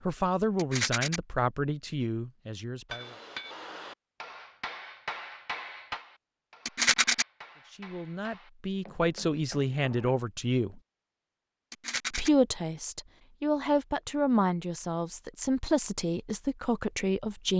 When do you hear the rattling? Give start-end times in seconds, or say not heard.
0.6-1.2, 6.7-7.2, 11.7-12.3.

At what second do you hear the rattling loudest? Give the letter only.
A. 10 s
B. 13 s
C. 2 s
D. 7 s
D.